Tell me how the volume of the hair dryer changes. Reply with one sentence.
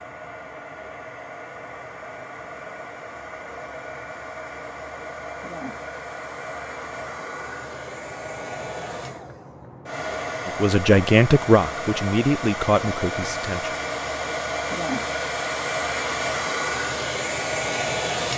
The loudness of the hair dryer goes up.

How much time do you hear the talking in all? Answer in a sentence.
You can hear the talking for 3 seconds altogether.